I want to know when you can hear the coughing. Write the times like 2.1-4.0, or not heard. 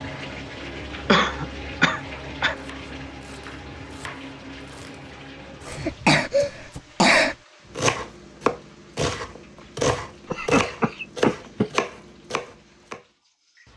1.1-2.5, 5.7-7.3, 10.3-11.7.